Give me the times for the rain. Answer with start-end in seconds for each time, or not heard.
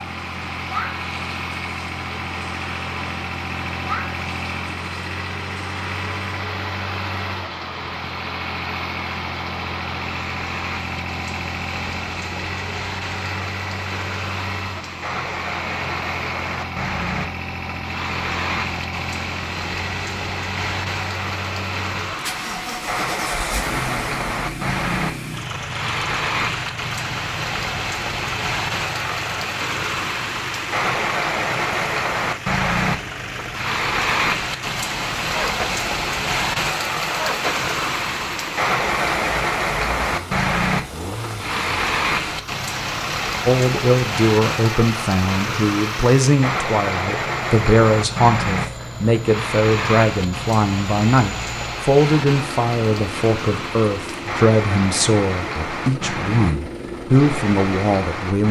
0.0-58.4.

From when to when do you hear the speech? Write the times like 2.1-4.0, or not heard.
43.5-58.4.